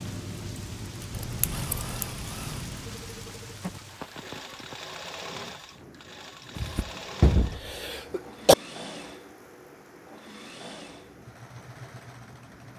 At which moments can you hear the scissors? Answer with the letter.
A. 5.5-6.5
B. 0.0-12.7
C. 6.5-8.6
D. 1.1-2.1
D.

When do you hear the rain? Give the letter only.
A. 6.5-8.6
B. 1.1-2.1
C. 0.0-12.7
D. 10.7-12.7
C.